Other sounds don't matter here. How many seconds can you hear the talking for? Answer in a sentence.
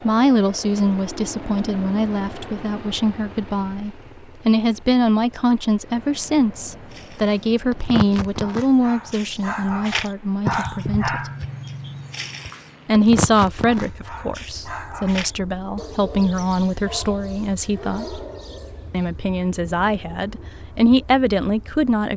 The talking can be heard for 20 seconds in total.